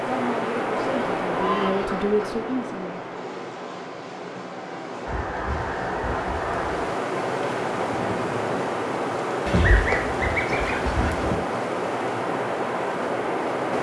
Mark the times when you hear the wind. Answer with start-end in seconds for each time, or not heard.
0.0-13.7.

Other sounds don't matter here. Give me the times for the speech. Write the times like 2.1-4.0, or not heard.
0.1-3.0.